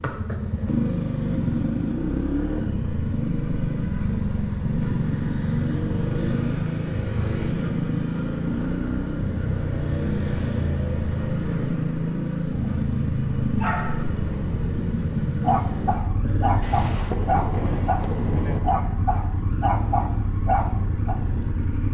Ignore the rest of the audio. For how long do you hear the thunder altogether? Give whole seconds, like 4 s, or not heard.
2 s.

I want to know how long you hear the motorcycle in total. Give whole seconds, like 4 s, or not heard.
22 s.